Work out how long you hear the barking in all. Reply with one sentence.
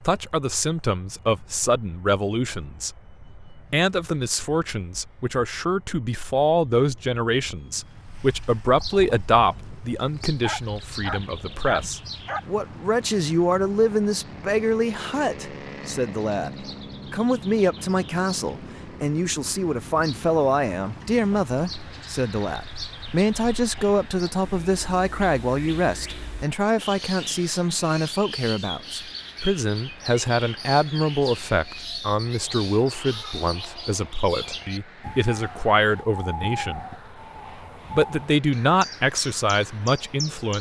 The barking can be heard for 2 seconds in total.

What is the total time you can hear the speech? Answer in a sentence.
The speech can be heard for 39 seconds in total.